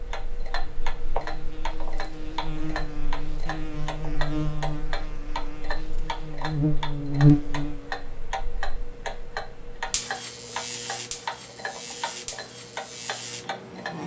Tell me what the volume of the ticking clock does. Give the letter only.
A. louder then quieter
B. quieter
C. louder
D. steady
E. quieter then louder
D.